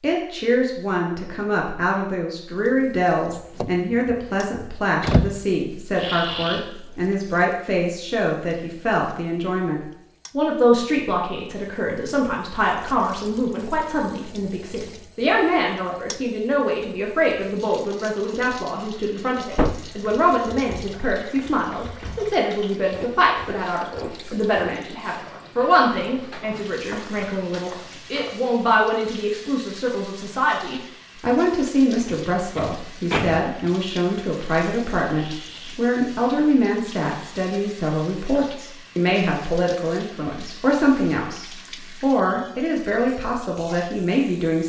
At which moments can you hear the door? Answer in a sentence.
You can hear the door from 3.3 to 5.3 s, from 19.5 to 19.9 s and from 32.0 to 33.5 s.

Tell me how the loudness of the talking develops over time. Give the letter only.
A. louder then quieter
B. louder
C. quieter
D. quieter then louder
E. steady
E.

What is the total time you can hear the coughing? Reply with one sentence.
The coughing can be heard for 2 seconds in total.